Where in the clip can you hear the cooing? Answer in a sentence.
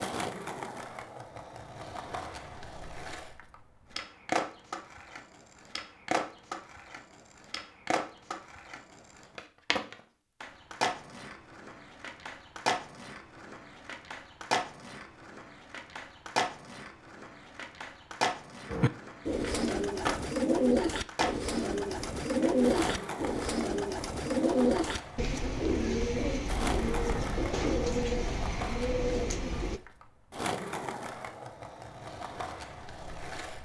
The cooing can be heard from 18.7 to 29.8 s.